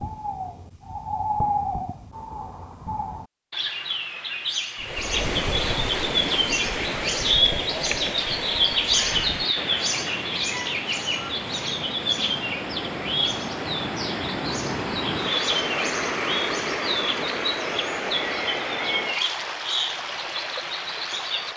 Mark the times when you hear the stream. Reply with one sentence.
You can hear the stream from 4.8 to 21.5 s.